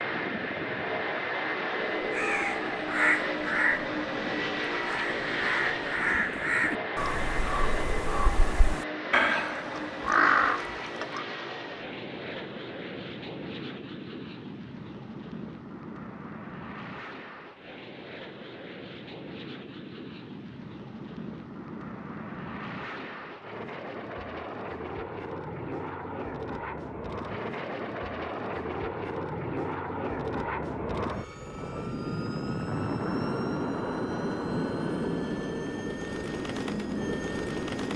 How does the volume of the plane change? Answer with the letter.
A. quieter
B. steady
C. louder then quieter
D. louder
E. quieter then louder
E.